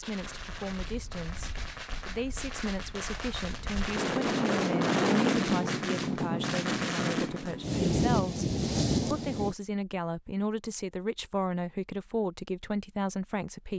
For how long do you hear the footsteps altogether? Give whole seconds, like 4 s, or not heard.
not heard.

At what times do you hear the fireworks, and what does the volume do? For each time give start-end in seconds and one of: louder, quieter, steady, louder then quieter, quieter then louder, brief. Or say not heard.
0.0-7.5 louder.